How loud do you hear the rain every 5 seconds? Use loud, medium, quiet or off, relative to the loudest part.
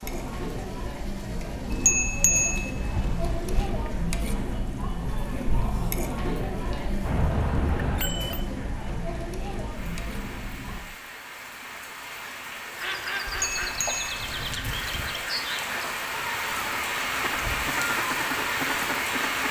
quiet, quiet, medium, loud.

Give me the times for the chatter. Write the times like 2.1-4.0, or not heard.
0.0-10.8.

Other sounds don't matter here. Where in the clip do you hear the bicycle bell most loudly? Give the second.
2 s.